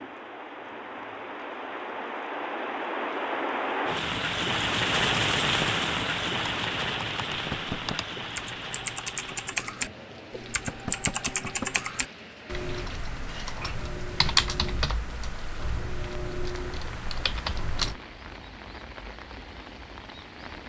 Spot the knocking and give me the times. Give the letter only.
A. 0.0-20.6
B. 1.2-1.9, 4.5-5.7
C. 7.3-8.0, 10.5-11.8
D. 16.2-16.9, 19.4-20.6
C.